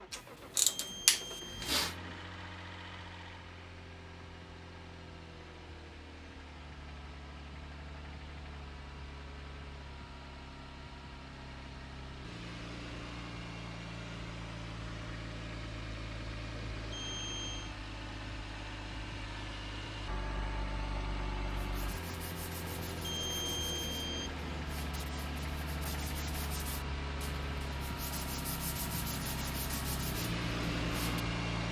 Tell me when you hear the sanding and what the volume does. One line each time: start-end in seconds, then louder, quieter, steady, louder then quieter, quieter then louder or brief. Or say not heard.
21.7-31.2 louder.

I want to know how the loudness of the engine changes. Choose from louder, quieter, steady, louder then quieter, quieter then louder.
louder.